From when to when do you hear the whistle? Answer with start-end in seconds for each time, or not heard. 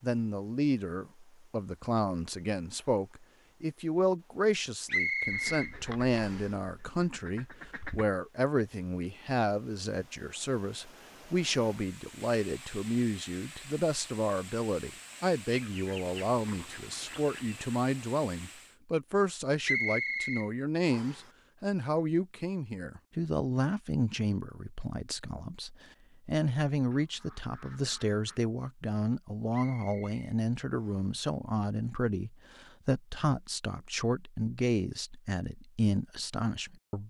4.8-6.5, 19.6-21.2, 29.5-31.1.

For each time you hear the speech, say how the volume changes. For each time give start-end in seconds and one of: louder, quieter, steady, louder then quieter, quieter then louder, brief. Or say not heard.
0.0-37.0 steady.